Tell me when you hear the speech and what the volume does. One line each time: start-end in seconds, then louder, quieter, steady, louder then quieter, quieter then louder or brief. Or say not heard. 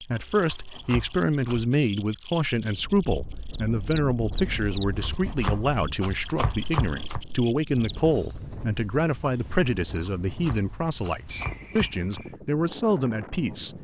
0.0-13.7 steady.